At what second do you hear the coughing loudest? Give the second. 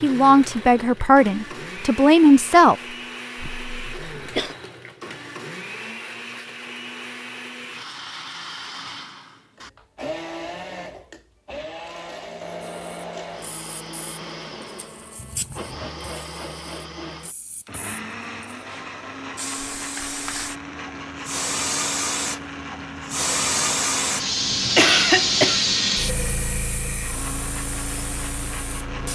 25 s.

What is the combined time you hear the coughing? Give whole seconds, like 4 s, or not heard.
2 s.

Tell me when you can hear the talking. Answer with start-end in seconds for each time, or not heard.
0.0-2.8.